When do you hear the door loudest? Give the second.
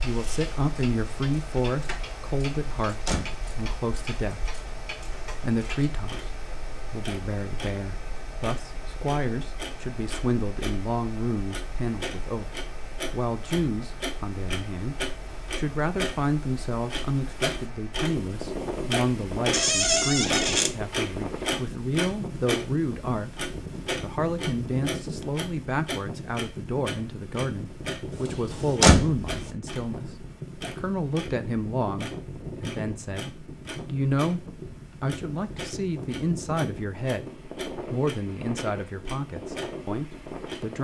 29 s.